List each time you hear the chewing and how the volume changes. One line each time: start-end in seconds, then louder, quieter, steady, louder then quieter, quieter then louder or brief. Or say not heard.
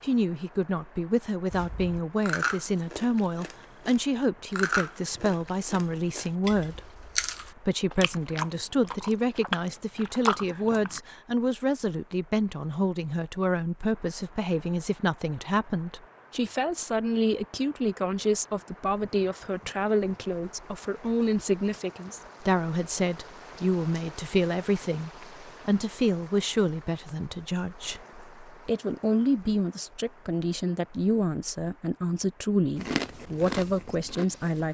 1.5-11.0 quieter then louder
32.8-34.6 brief.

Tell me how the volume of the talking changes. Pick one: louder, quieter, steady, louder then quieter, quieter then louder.
steady.